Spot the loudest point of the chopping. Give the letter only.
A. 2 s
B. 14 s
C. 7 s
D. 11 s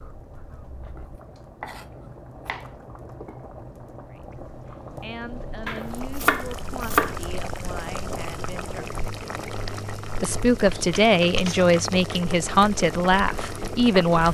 C.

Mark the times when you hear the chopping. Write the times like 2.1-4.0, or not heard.
0.8-2.7, 5.7-7.2, 10.5-11.7.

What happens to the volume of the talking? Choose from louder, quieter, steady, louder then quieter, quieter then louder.
louder.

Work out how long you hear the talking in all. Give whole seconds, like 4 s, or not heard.
9 s.